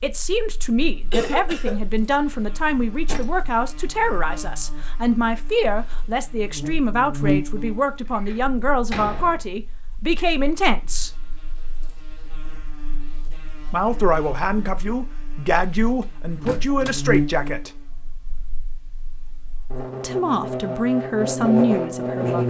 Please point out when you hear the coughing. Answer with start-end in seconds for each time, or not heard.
1.1-1.8.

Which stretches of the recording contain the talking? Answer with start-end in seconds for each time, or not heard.
0.0-11.1, 13.7-17.8, 20.0-22.4.